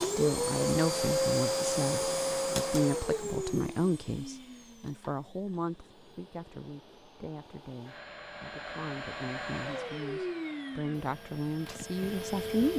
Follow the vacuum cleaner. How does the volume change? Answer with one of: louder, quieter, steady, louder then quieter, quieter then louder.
quieter then louder.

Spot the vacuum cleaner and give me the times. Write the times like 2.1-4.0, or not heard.
0.0-12.7.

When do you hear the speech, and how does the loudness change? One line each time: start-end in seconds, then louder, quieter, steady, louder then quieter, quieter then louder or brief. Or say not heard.
0.0-12.7 quieter then louder.